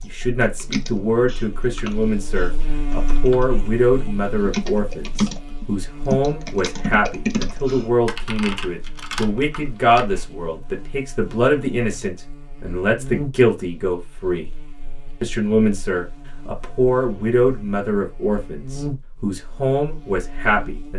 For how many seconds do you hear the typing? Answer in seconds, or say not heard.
10 s.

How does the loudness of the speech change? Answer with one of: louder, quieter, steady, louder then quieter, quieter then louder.
steady.